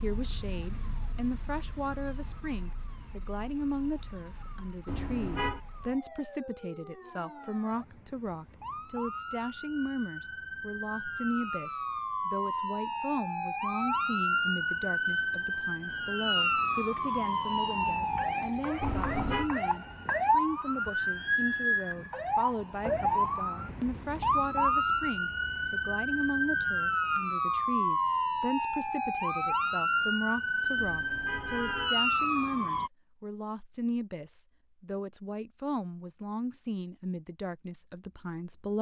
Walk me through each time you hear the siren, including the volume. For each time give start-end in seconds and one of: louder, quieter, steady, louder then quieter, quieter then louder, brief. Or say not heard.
0.0-32.9 louder.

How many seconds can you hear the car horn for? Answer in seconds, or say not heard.
3 s.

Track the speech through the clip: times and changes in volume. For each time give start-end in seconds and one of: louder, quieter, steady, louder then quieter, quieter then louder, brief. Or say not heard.
0.0-38.7 steady.